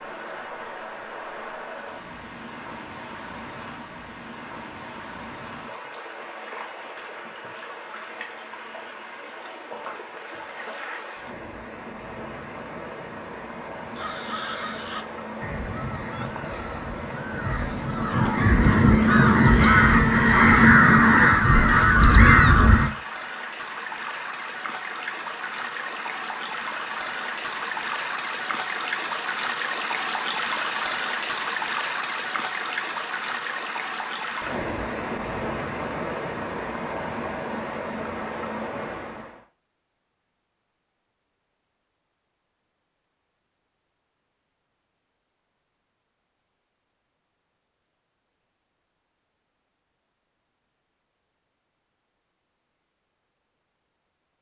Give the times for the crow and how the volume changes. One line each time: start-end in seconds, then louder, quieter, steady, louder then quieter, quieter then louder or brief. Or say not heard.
13.9-22.9 louder.